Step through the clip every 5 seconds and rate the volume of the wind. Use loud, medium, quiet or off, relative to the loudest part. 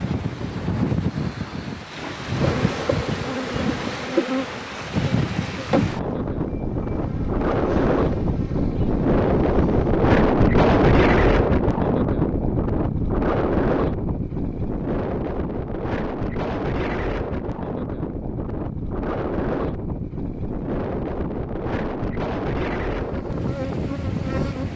medium, loud, loud, medium, medium.